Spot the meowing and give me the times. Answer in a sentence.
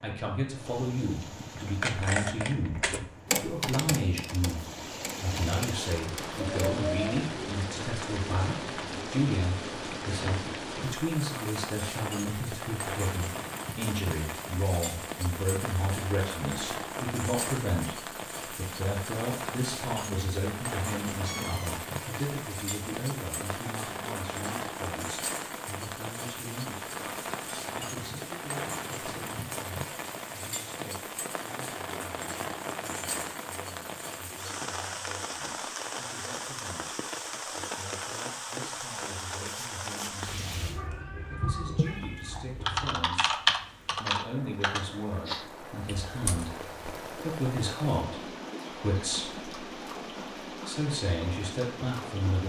You can hear the meowing from 6.3 to 7.3 s, from 21.2 to 21.8 s and from 40.5 to 43.0 s.